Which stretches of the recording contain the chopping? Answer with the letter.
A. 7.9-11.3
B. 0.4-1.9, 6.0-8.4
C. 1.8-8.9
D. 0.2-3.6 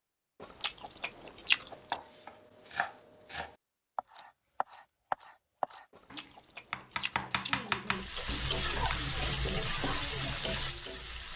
C.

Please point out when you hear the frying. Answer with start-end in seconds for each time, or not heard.
7.9-11.3.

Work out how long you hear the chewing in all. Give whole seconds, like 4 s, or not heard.
4 s.